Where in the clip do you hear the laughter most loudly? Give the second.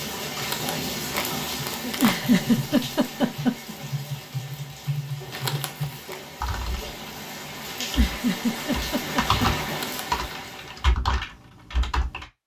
2 s.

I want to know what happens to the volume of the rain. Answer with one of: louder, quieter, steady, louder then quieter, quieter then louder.
quieter then louder.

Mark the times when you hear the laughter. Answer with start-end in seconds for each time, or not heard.
1.8-3.8, 7.8-9.6.